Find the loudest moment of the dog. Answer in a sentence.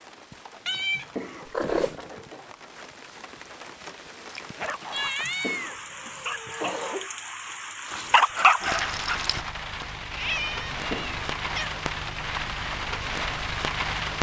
The volume of the dog peaks at 8 seconds.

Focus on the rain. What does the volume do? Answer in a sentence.
The loudness of the rain goes up.